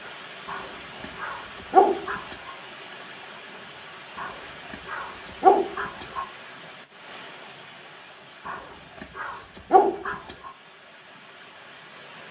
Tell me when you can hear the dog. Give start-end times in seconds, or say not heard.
0.5-2.5, 4.2-6.2, 8.4-10.5.